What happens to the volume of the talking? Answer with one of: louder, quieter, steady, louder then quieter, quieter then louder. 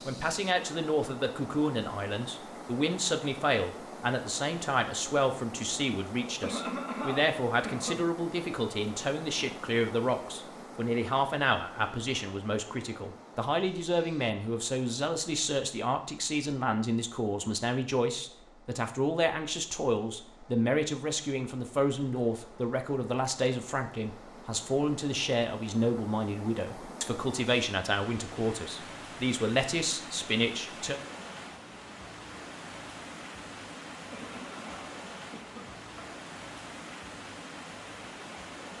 steady.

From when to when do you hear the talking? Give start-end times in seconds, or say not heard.
0.1-31.0.